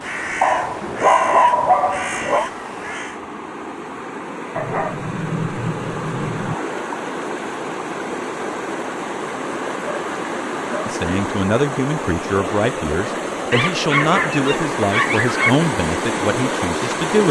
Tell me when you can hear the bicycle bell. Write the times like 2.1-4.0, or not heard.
not heard.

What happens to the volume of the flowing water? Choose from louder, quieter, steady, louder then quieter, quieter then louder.
louder.